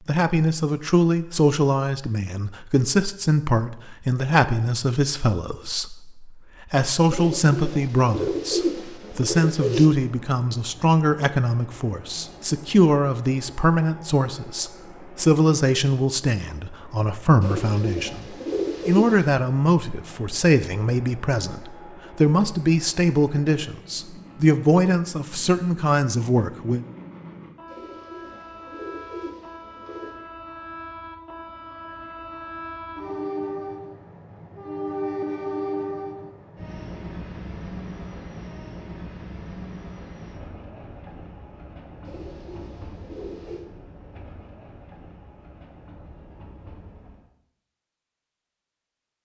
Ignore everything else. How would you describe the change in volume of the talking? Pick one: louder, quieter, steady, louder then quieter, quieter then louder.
steady.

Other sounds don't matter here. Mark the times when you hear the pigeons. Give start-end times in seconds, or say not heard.
7.0-9.9, 17.4-19.2, 27.6-30.1, 42.0-43.6.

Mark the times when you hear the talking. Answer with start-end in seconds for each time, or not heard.
0.1-26.8.